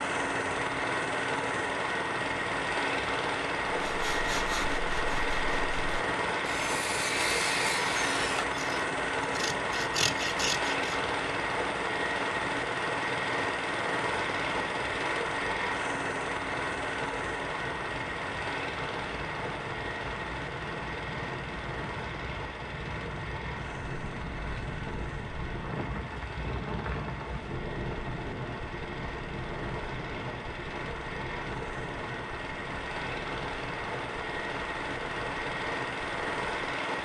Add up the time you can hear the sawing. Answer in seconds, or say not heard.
7 s.